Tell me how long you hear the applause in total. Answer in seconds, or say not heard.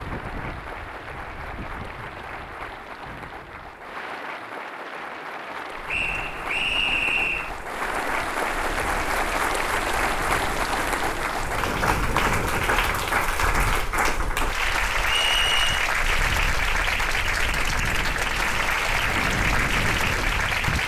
21 s.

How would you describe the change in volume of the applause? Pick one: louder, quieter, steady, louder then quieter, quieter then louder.
louder.